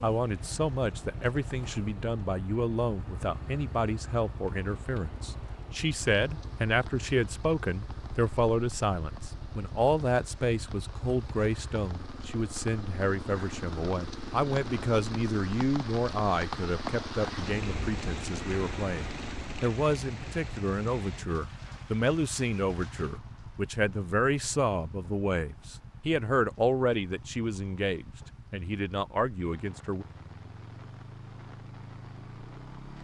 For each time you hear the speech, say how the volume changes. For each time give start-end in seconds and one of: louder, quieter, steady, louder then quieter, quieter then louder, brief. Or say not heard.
0.0-30.1 steady.